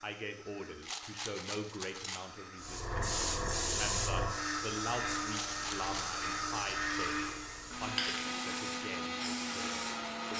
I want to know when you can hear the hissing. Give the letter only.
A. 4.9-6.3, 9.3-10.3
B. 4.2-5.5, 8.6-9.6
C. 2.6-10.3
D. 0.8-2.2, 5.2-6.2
C.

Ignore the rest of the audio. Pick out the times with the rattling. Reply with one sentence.
The rattling can be heard from 0.8 to 2.2 s and from 5.2 to 6.2 s.